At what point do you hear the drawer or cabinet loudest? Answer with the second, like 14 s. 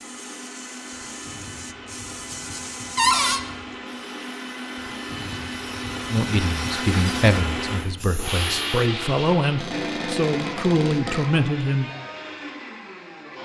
3 s.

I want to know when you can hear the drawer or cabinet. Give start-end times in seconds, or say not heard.
3.0-3.4, 9.6-11.2.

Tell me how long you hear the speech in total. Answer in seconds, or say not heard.
6 s.